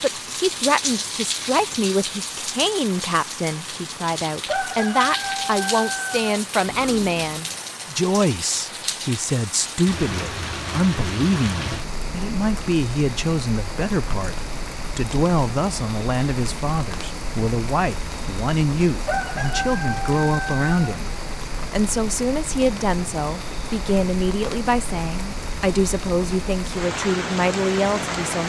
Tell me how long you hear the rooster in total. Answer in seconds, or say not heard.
4 s.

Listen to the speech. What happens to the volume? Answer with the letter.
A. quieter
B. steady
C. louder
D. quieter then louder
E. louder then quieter
B.